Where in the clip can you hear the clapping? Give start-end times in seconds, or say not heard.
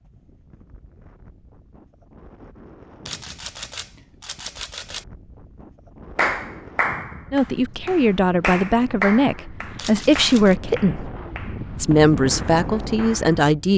6.2-13.4.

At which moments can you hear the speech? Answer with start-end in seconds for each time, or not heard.
7.3-11.1, 11.8-13.7.